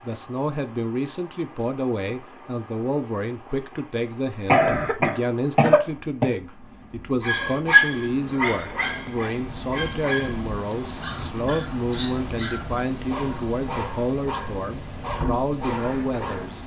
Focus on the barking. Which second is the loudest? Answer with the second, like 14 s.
8 s.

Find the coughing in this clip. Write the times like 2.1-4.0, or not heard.
4.5-6.4.